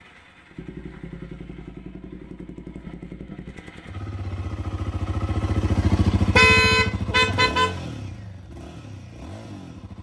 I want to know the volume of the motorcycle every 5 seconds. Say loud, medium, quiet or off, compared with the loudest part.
medium, loud.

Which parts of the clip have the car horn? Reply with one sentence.
You can hear the car horn from 6.3 to 7.7 s.